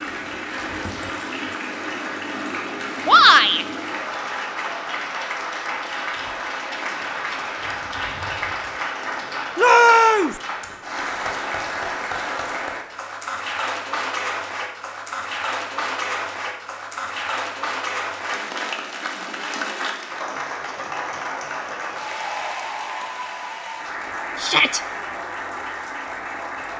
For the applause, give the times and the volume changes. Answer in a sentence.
You can hear the applause from 0.0 to 26.7 s, at a steady volume.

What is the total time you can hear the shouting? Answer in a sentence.
The shouting can be heard for 2 seconds in total.